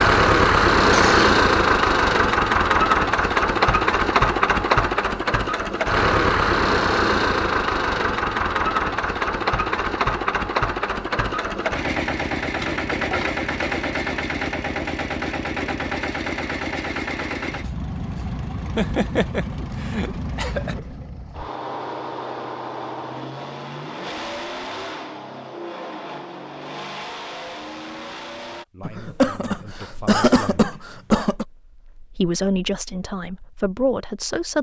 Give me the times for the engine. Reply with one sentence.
You can hear the engine from 0.0 to 28.6 s.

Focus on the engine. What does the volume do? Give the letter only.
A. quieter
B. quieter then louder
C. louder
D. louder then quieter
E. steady
A.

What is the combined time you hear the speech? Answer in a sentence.
The speech can be heard for 6 seconds in total.